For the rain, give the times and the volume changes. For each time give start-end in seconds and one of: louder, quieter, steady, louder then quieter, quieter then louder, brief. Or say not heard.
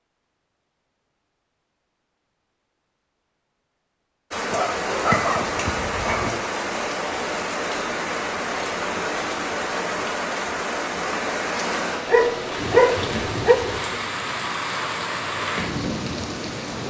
4.3-16.8 steady.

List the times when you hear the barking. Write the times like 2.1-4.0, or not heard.
4.5-6.4, 12.1-13.6.